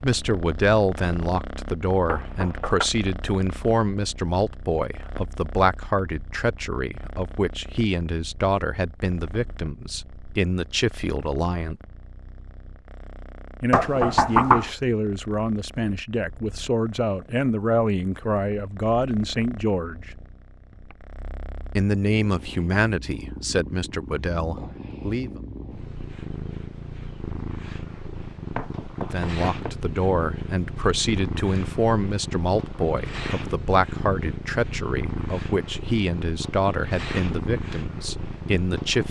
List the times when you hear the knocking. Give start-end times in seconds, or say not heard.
2.0-2.9, 13.7-14.7, 28.6-29.7.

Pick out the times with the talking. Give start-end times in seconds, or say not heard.
0.0-11.8, 13.6-20.1, 21.8-25.3, 29.0-39.0.